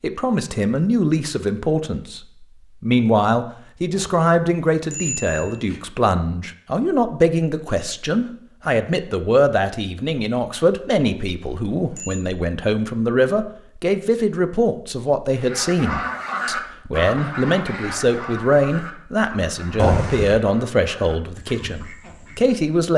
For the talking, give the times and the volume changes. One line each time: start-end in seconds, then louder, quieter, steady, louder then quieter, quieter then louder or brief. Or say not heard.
0.0-2.2 brief
2.8-22.9 steady.